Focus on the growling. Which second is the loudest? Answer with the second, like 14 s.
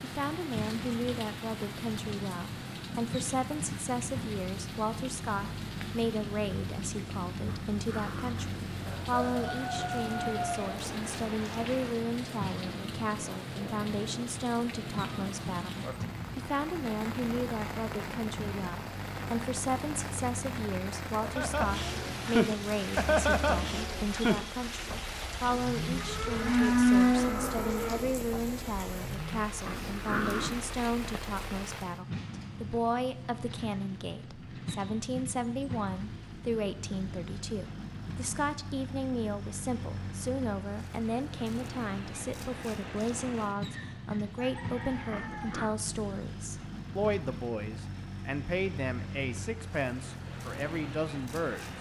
30 s.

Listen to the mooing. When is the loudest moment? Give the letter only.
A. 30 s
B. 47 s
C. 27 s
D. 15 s
C.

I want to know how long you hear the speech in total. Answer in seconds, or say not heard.
52 s.